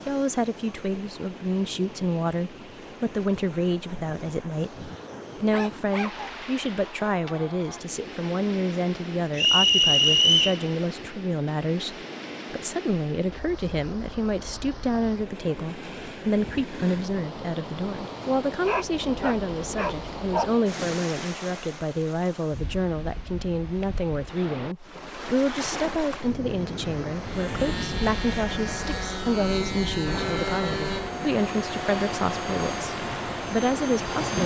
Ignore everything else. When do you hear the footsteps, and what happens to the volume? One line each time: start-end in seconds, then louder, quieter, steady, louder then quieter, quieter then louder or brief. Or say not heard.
not heard.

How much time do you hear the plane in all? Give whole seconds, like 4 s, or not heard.
7 s.